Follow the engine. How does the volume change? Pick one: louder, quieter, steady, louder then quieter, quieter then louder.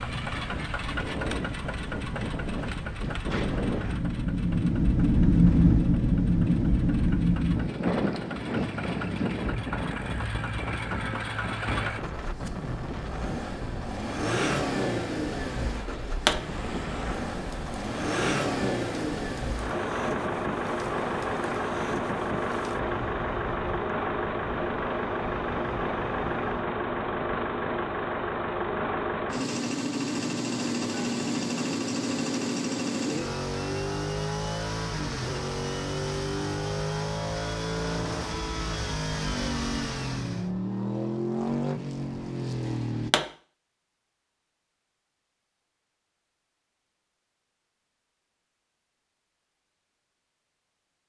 louder.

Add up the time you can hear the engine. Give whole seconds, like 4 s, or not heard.
43 s.